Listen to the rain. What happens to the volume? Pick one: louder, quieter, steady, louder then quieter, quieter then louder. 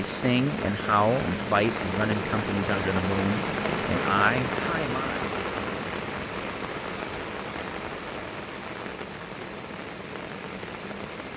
quieter.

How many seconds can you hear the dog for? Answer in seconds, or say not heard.
not heard.